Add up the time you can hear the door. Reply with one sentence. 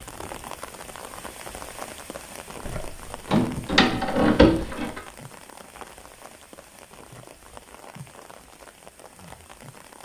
You can hear the door for 2 seconds altogether.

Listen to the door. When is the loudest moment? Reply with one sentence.
The volume of the door peaks at 4 seconds.